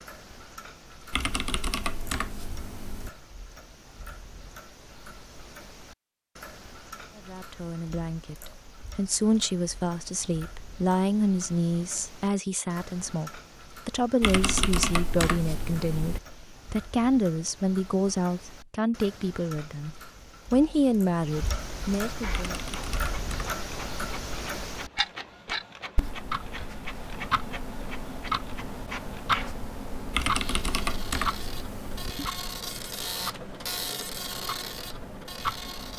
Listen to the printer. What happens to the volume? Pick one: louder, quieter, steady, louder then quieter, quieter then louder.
louder.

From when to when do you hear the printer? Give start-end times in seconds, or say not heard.
22.2-35.9.